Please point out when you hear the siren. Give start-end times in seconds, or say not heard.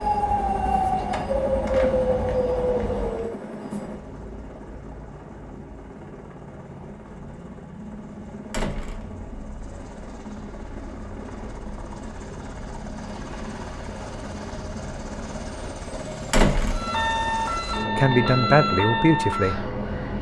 0.0-3.3, 16.7-20.1.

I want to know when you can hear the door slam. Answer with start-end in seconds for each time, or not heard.
1.1-2.1, 8.5-9.1, 16.3-16.9.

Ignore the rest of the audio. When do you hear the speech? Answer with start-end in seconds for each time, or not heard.
17.9-19.7.